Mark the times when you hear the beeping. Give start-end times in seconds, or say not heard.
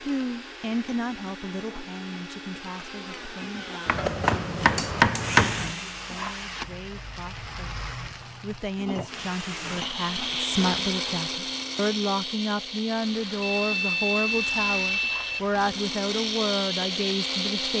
13.4-15.4.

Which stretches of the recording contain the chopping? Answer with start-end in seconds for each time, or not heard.
3.9-5.8.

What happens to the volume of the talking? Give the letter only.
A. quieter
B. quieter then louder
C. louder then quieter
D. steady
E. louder
B.